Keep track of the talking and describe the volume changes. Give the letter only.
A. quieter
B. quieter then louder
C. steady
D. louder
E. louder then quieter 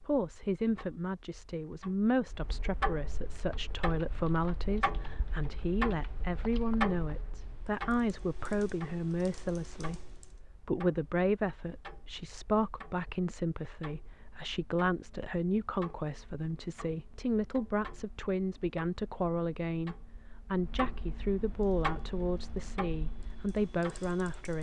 C.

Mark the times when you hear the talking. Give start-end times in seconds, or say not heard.
0.0-24.5.